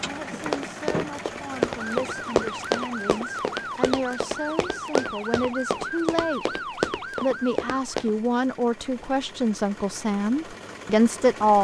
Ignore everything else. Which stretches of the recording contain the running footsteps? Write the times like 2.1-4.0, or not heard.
0.4-8.2.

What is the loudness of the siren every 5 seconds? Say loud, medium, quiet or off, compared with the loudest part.
loud, loud, off.